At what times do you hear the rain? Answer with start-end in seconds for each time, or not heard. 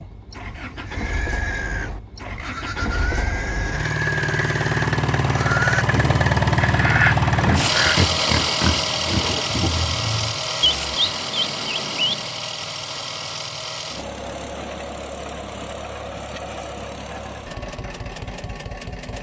not heard.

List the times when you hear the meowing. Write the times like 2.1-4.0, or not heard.
not heard.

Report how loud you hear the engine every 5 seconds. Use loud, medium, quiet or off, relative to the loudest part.
medium, loud, medium, quiet.